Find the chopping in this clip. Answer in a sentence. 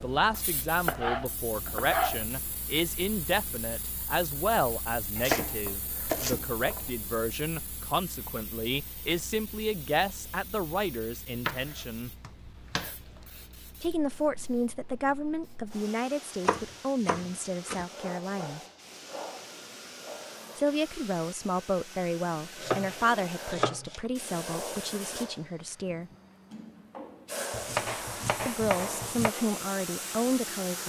You can hear the chopping from 0.8 to 2.2 s, from 5.2 to 6.8 s, from 11.4 to 12.9 s, from 16.4 to 17.9 s, from 22.6 to 24.0 s and from 27.5 to 29.4 s.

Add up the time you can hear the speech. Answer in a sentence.
The speech can be heard for 25 seconds in total.